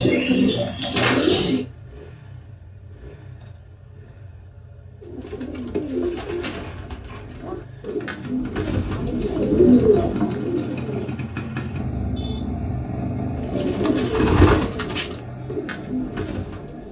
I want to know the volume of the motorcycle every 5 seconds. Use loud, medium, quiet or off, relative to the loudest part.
quiet, medium, loud, medium.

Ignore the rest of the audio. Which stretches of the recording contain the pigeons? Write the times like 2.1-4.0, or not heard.
0.0-1.6, 5.0-11.2, 13.4-16.8.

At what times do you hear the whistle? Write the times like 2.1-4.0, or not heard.
not heard.